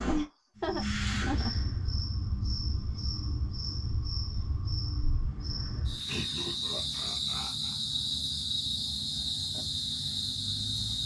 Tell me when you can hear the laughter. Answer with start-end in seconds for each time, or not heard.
0.1-1.5, 6.0-7.8.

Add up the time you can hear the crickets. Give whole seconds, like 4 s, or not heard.
11 s.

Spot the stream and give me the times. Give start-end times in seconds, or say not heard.
not heard.